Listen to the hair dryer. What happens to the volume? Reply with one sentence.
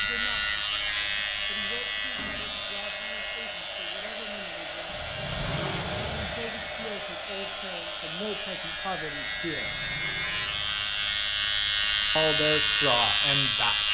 The volume of the hair dryer goes up, then down.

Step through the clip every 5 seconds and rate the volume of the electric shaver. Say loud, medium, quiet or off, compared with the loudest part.
medium, medium, loud.